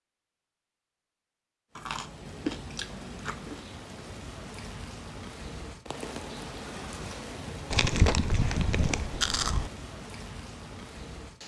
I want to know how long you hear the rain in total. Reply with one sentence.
The rain can be heard for 10 seconds in total.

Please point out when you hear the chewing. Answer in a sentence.
The chewing can be heard from 1.8 to 3.6 s and from 7.7 to 9.7 s.